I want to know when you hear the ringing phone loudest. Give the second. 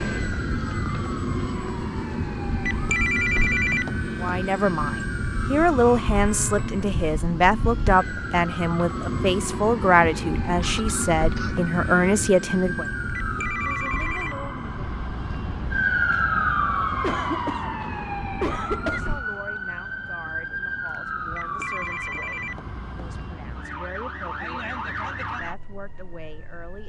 3 s.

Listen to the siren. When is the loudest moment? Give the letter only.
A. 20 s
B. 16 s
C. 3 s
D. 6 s
B.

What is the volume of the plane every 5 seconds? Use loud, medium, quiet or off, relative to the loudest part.
loud, loud, loud, medium, off, off.